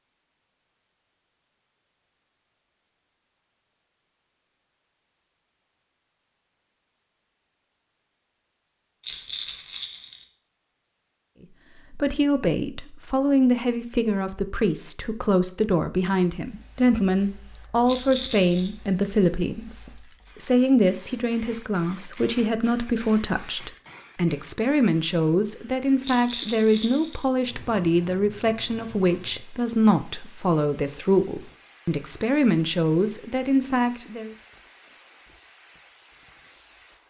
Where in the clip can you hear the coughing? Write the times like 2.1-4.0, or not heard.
not heard.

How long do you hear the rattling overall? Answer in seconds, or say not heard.
3 s.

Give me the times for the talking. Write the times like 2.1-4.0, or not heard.
11.9-34.3.